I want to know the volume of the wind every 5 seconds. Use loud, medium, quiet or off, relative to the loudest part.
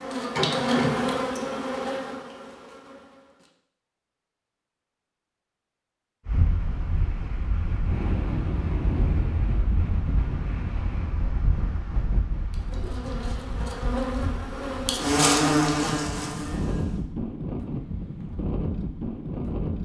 off, loud, medium, loud.